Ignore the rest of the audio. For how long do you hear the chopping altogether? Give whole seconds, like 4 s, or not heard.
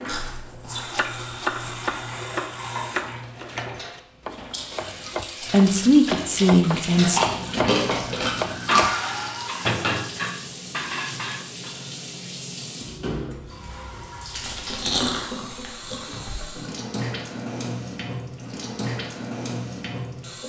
8 s.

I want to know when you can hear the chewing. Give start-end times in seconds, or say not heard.
0.1-1.9, 7.1-8.8, 14.3-16.4.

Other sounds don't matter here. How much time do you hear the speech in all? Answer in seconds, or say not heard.
2 s.